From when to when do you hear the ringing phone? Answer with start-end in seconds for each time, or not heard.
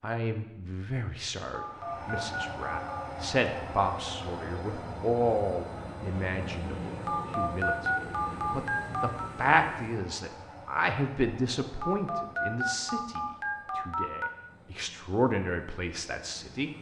1.5-3.0, 7.0-9.3, 11.8-14.3.